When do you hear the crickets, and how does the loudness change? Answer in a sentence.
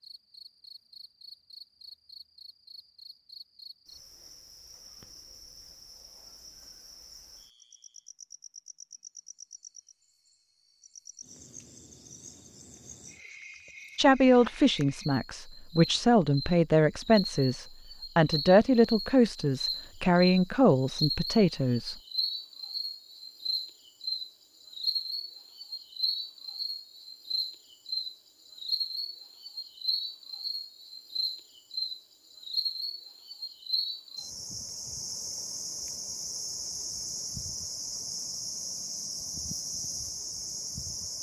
The crickets can be heard from 0.0 to 41.1 s, getting louder.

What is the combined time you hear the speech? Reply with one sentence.
The speech can be heard for 8 seconds in total.